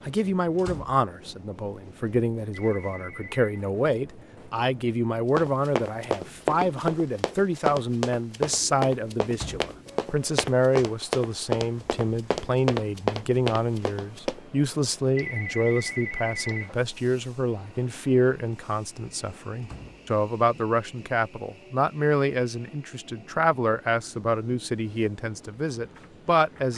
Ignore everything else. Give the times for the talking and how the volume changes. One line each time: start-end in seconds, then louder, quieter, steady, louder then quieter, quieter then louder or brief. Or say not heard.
0.1-26.7 steady.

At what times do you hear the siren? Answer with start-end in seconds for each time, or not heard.
not heard.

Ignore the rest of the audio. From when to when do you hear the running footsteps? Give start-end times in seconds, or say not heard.
5.3-14.4.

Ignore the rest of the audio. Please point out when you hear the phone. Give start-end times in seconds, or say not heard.
2.5-3.5, 15.2-16.8.